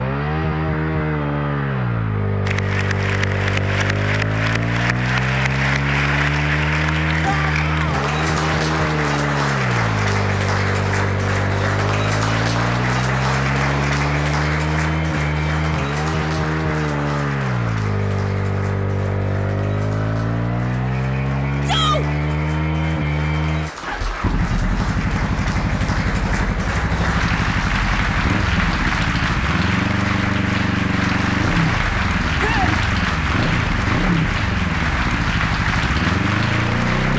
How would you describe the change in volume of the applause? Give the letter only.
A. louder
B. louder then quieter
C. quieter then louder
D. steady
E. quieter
C.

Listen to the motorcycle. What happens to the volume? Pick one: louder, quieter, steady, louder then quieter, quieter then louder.
steady.